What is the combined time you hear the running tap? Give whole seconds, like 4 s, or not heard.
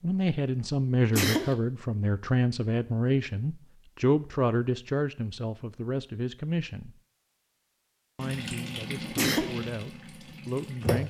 3 s.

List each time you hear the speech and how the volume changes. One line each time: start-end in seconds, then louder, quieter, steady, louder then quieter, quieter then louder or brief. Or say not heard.
0.0-7.0 quieter
8.2-11.0 brief.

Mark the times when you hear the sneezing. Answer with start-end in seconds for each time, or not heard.
1.1-1.6, 9.2-9.6.